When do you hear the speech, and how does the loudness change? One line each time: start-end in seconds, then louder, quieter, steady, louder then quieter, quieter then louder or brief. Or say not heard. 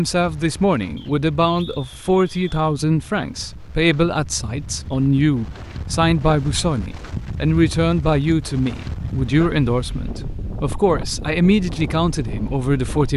0.0-13.1 steady.